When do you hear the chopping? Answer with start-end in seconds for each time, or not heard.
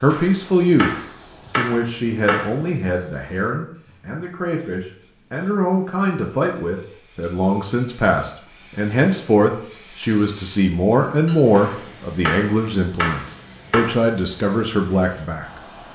0.1-2.5, 11.6-14.0.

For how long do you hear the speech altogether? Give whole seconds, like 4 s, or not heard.
15 s.